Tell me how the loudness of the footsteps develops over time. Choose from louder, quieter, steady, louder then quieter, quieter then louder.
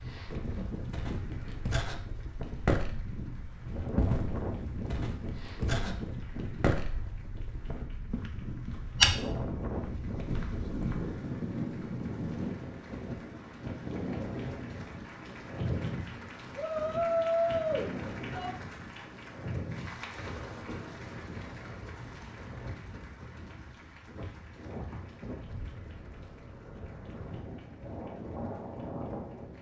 quieter then louder.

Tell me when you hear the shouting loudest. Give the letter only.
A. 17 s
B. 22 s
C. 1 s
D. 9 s
A.